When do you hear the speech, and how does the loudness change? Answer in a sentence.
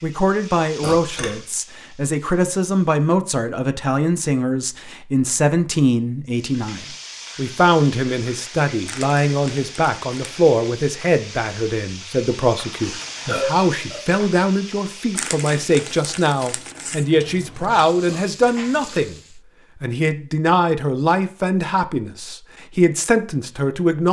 The speech can be heard from 0.0 to 24.0 s, at a steady volume.